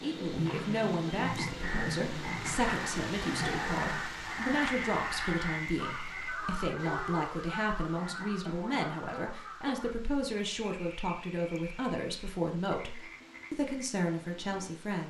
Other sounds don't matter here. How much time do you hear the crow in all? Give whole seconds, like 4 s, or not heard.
8 s.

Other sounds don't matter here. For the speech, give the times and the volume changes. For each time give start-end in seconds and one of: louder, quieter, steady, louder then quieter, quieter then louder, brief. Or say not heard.
0.0-15.0 steady.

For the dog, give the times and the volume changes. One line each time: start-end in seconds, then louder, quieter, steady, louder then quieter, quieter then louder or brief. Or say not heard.
not heard.